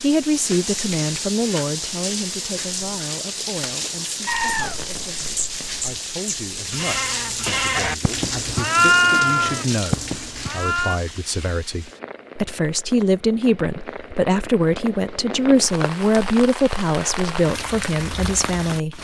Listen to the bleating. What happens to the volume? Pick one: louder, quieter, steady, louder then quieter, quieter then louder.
louder then quieter.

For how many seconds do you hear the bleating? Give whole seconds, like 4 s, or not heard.
7 s.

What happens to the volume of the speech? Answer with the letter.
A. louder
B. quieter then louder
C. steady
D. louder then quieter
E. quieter
B.